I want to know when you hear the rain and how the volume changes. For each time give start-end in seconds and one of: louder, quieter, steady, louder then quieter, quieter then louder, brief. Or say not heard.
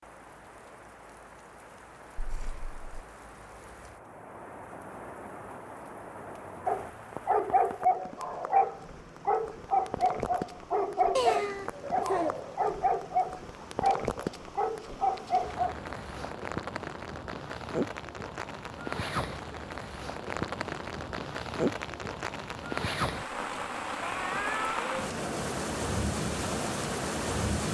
0.0-27.6 louder.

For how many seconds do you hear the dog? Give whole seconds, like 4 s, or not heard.
9 s.